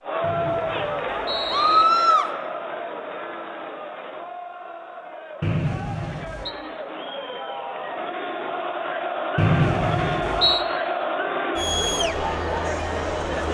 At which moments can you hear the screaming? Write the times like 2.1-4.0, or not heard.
1.5-2.3.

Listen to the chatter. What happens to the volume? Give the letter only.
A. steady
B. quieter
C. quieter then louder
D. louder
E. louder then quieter
C.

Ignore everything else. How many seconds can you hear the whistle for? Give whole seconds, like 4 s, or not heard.
4 s.